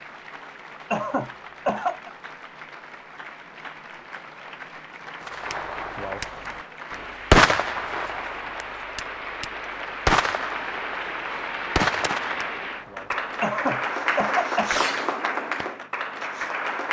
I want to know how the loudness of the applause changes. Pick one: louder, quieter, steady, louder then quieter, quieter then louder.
louder.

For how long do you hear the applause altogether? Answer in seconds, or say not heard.
17 s.